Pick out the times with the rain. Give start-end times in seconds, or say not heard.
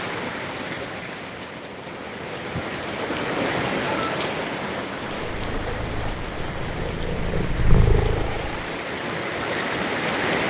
0.0-10.4.